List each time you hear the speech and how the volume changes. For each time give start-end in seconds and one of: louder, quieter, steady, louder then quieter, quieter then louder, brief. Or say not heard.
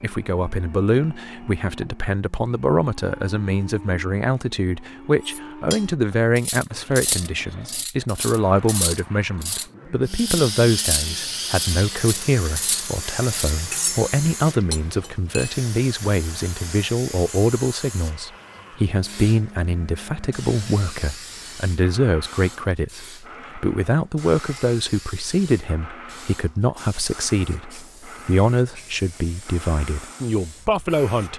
0.0-31.3 steady.